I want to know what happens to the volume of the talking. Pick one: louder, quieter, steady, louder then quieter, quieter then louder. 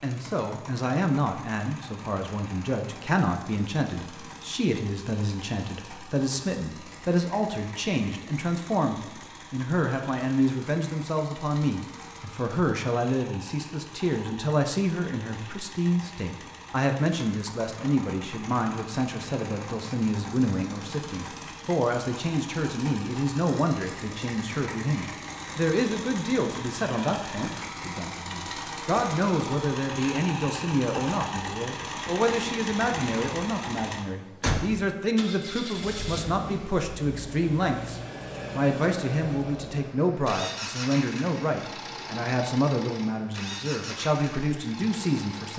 steady.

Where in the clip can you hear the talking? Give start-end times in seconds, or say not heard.
0.0-45.5.